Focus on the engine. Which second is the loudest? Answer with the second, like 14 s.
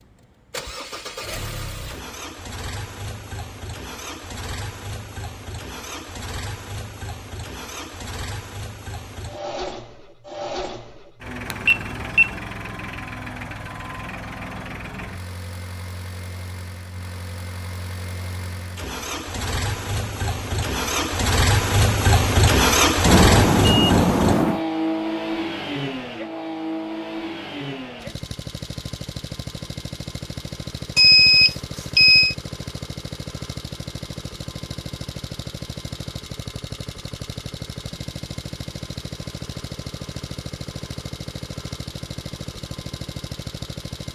23 s.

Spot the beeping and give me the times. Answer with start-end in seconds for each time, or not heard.
11.5-12.3, 23.1-24.6, 30.9-32.4.